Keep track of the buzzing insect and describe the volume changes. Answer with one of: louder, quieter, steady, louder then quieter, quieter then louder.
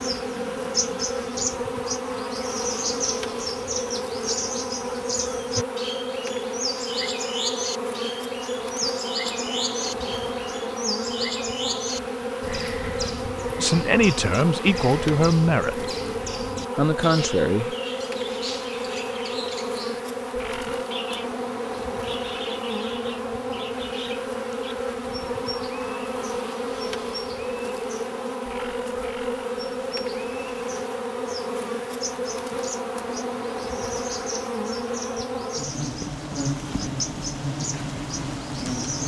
steady.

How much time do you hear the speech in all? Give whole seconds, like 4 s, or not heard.
3 s.